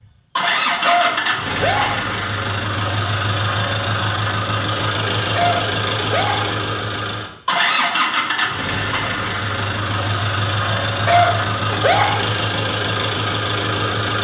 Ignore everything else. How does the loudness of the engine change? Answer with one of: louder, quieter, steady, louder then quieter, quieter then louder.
steady.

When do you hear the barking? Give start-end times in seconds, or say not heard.
0.5-2.1, 5.2-6.6, 10.8-12.3.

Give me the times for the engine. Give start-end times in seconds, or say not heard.
0.3-14.2.